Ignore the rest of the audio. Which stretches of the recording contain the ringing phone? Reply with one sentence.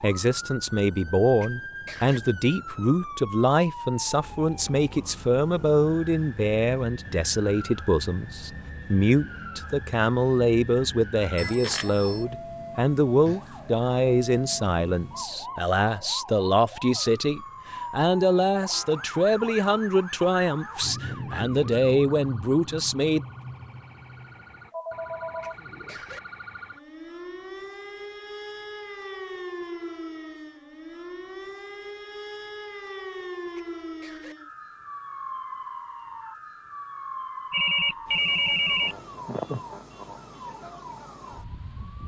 The ringing phone can be heard from 11.3 to 12.2 s, from 24.7 to 25.6 s and from 37.5 to 39.0 s.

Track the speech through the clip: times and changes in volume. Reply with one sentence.
The speech can be heard from 0.0 to 23.2 s, at a steady volume.